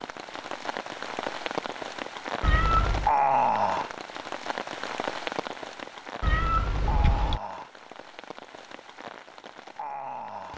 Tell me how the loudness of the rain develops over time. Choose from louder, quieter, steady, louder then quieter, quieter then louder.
louder then quieter.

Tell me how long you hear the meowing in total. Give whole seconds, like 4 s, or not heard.
2 s.